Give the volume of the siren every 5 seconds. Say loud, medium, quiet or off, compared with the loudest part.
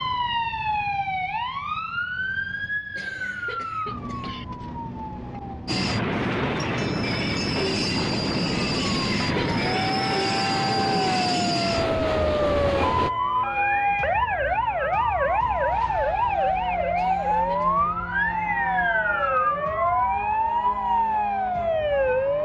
medium, medium, loud, loud, loud.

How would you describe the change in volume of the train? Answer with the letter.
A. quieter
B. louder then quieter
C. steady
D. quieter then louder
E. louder
C.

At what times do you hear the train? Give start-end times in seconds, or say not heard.
5.7-13.1.